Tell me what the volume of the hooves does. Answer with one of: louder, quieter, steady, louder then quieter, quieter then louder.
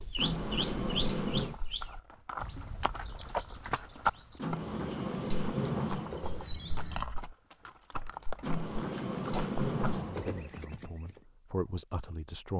louder then quieter.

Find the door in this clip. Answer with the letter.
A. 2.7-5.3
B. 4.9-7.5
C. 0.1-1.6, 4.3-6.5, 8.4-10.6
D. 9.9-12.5
C.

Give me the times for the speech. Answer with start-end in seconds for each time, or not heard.
9.9-12.5.